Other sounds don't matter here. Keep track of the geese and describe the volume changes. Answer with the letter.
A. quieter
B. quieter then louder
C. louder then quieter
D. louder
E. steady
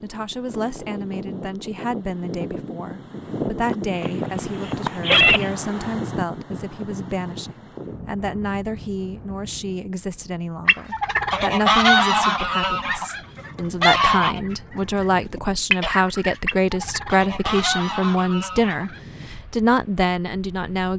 A.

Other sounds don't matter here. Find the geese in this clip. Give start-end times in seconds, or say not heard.
10.7-19.0.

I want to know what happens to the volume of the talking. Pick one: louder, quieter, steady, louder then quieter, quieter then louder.
louder.